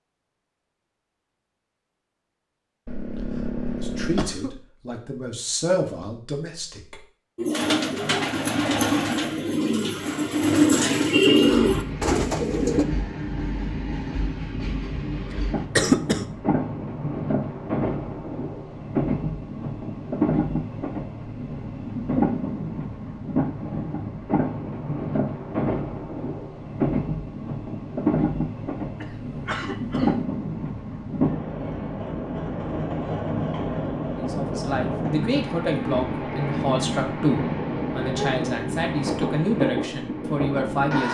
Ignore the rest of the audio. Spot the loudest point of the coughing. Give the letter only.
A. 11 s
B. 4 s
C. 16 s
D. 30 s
C.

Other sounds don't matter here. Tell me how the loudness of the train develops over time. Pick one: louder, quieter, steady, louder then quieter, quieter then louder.
steady.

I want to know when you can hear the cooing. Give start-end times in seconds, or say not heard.
7.3-12.8.